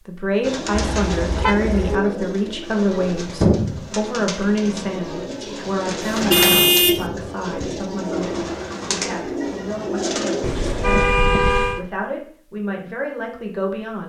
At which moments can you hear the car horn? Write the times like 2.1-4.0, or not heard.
0.8-1.9, 5.6-7.1, 10.4-11.8.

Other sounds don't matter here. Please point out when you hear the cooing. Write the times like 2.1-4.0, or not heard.
0.4-11.1.